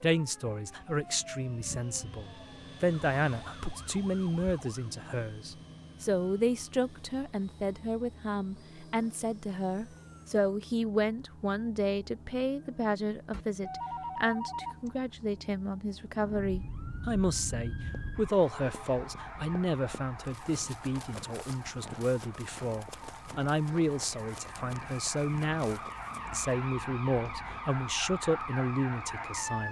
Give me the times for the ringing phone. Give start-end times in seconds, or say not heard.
13.3-14.9.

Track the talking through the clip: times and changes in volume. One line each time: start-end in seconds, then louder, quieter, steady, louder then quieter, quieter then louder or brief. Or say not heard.
0.0-29.6 steady.